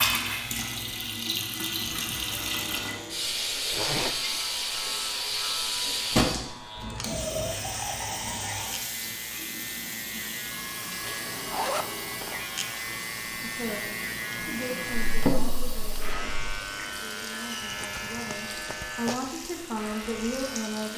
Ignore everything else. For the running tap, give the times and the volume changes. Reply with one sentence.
The running tap can be heard from 0.0 to 20.9 s, getting quieter.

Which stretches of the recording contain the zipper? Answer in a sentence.
You can hear the zipper from 3.7 to 4.2 s, from 11.0 to 12.4 s and from 17.6 to 19.1 s.